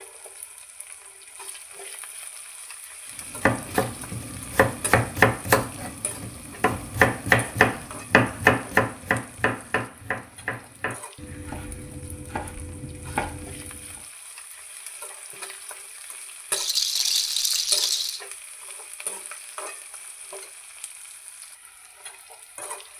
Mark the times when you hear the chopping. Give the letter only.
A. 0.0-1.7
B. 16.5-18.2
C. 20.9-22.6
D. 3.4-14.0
D.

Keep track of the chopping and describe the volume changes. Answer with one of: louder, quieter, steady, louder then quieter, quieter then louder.
quieter.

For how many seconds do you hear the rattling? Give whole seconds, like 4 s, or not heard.
2 s.